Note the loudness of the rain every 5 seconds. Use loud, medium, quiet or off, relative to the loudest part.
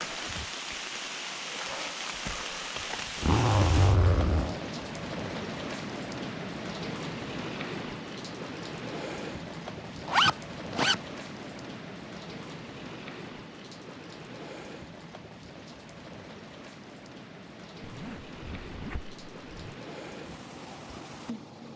loud, loud, medium, medium, medium.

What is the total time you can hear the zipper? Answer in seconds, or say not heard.
4 s.